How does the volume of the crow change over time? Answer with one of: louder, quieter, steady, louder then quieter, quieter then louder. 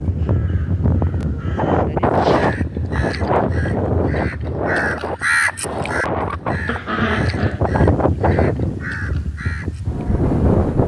louder then quieter.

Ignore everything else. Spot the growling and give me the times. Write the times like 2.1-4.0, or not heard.
6.7-7.6.